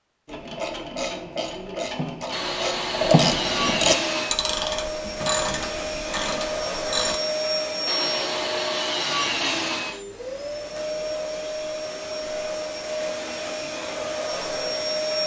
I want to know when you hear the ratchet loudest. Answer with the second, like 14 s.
3 s.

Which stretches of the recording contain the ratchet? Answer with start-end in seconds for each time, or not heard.
0.2-7.2.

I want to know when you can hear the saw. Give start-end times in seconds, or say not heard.
2.3-4.3, 7.8-10.1.